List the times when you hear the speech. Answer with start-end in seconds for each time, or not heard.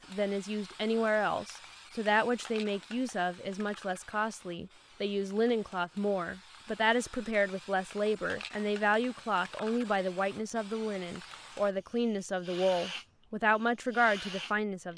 0.1-14.9.